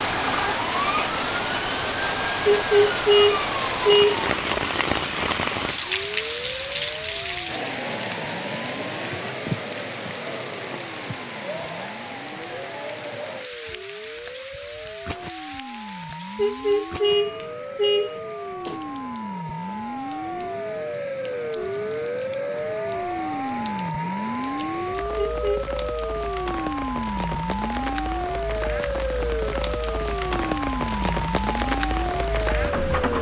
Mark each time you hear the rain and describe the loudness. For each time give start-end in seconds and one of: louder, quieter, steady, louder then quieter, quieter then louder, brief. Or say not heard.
0.0-33.1 quieter then louder.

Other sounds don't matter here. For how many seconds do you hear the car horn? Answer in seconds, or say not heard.
4 s.